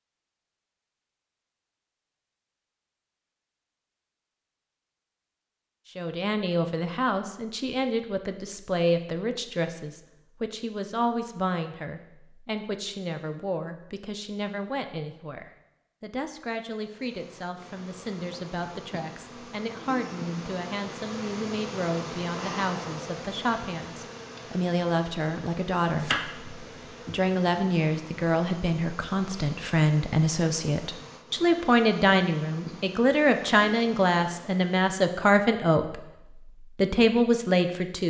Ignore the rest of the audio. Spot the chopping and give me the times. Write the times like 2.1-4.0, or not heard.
26.0-27.2.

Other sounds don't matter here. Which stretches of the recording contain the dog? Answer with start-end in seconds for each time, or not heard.
not heard.